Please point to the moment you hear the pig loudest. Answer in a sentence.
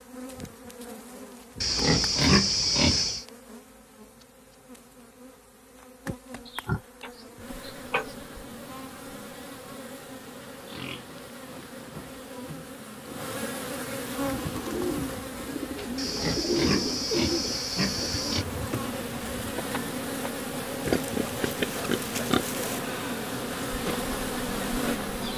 The volume of the pig peaks at 2 seconds.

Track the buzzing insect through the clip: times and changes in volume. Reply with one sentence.
The buzzing insect can be heard from 0.0 to 25.3 s, getting louder.